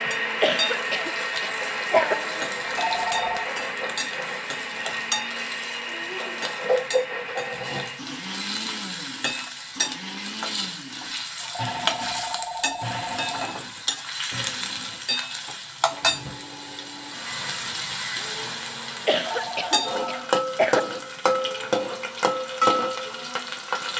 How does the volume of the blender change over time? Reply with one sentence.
The volume of the blender goes down.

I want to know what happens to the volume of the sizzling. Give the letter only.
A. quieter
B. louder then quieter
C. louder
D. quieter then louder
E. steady
C.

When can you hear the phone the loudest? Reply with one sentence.
The loudest moment of the phone is at 3 seconds.